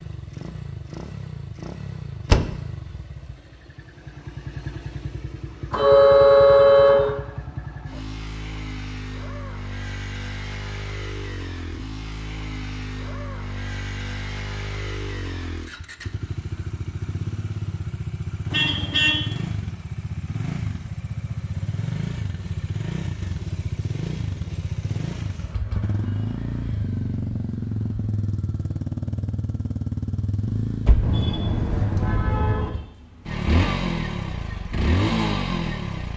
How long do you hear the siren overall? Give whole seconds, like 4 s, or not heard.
not heard.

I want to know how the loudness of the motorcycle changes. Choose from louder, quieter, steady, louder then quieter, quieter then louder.
louder.